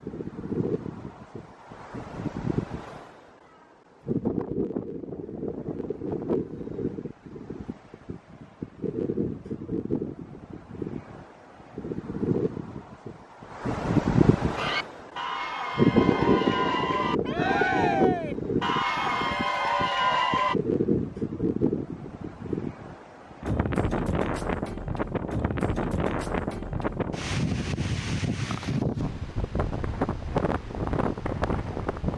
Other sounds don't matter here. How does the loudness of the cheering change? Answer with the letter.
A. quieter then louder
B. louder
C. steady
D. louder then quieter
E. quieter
B.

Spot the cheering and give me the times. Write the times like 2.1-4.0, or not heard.
14.6-20.6.